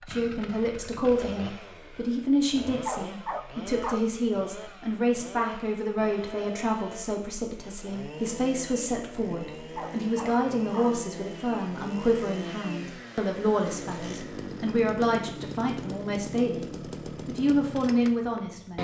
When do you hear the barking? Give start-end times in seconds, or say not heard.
2.6-4.0, 9.6-10.9.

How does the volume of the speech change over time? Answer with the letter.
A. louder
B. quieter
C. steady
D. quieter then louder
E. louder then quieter
C.